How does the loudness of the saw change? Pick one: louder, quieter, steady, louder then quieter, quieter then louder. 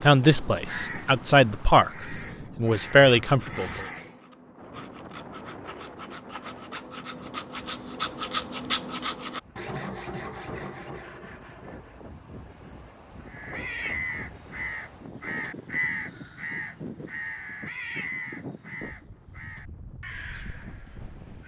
louder then quieter.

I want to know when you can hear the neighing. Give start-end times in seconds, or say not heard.
not heard.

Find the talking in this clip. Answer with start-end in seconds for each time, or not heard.
0.0-3.9.